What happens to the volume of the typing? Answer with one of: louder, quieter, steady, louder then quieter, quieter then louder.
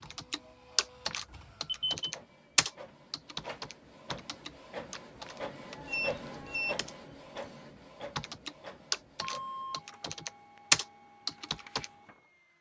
quieter then louder.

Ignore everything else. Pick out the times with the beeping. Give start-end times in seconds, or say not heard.
1.3-2.1, 5.8-6.8, 9.2-9.8.